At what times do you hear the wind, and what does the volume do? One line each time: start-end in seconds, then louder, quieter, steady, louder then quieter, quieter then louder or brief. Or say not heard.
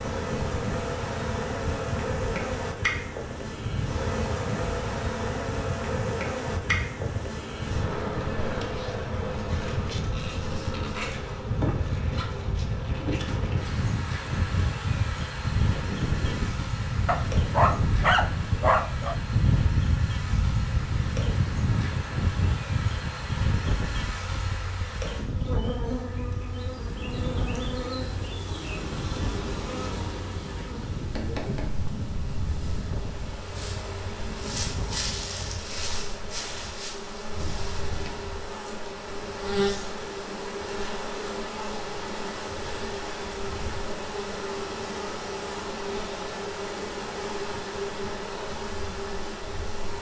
0.0-35.6 louder then quieter.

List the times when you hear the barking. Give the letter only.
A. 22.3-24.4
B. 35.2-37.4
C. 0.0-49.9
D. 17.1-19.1
D.